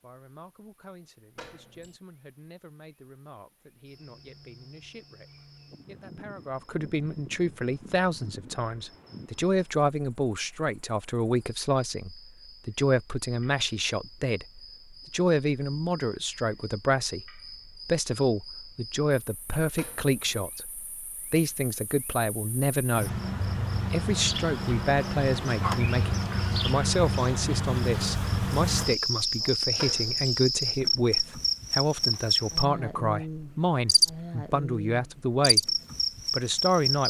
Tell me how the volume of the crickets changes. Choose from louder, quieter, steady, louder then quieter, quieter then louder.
louder.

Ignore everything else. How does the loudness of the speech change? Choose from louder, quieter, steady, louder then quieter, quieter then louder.
louder.